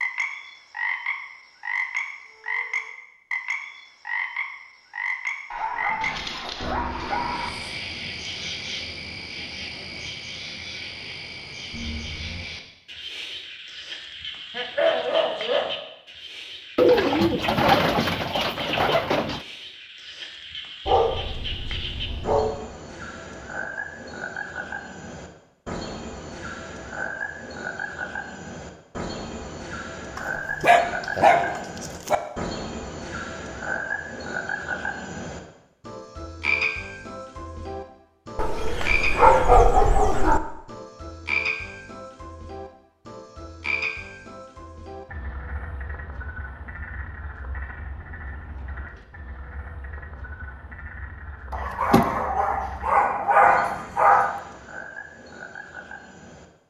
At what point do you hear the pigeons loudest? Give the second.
17 s.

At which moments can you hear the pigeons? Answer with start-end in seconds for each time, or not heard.
16.8-19.4.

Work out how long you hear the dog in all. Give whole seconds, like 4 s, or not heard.
12 s.